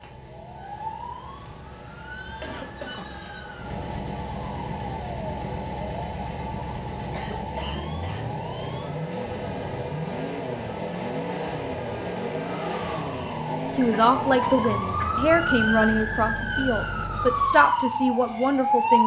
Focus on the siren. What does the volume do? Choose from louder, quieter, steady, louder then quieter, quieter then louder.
louder.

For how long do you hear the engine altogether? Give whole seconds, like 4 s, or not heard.
18 s.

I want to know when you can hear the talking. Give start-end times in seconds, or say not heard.
13.3-19.0.